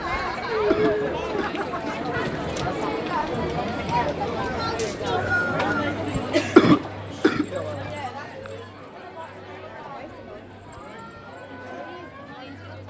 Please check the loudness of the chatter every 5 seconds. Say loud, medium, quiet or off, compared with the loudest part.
loud, loud, quiet.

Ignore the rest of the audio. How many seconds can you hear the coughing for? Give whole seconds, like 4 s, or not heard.
2 s.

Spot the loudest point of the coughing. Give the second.
7 s.